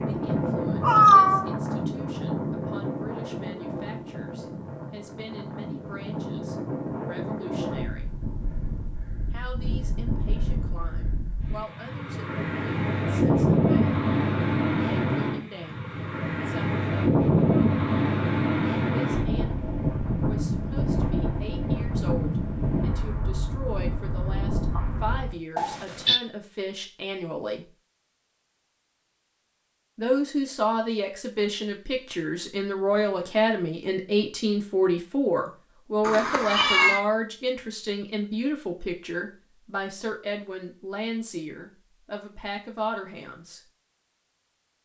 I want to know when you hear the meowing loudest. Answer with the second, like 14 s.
1 s.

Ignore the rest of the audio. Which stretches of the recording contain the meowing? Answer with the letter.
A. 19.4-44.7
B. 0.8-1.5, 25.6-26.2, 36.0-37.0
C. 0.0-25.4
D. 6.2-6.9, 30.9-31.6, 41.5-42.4
B.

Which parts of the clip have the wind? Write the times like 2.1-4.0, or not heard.
0.0-25.4.